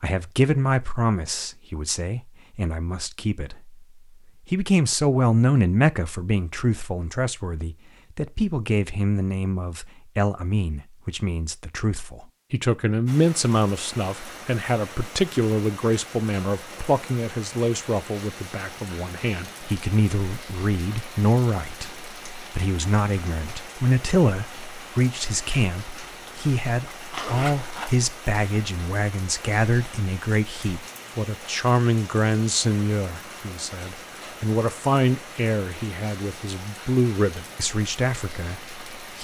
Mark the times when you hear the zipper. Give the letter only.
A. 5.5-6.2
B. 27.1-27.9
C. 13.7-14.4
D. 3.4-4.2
B.